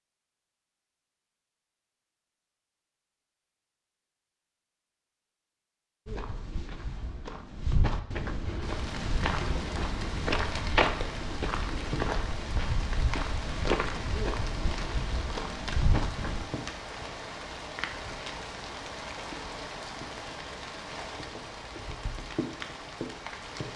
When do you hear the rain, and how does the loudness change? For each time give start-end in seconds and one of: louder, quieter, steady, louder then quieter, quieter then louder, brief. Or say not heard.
8.6-23.7 steady.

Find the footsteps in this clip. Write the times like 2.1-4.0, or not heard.
6.0-16.4.